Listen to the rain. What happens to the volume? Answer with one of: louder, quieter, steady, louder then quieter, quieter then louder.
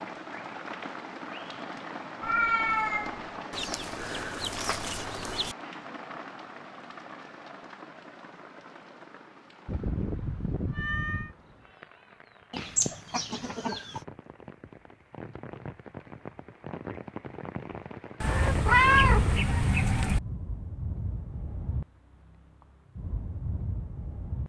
quieter then louder.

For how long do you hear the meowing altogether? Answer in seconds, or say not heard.
5 s.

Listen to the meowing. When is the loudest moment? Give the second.
19 s.